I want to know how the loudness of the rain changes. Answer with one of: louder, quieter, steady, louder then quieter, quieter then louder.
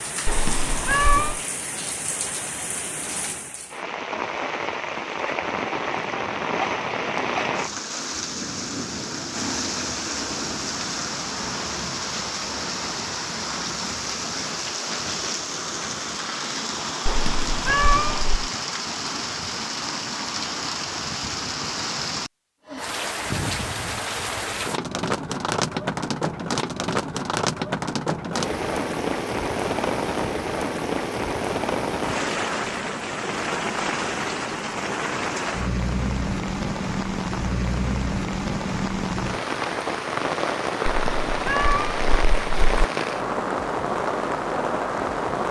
steady.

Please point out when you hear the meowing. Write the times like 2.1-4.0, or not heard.
0.2-1.4, 17.1-18.4, 40.9-42.9.